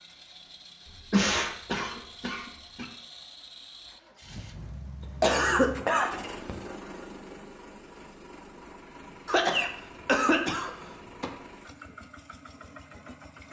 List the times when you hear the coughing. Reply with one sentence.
The coughing can be heard from 1.1 to 2.9 s, from 5.0 to 6.5 s and from 9.2 to 11.3 s.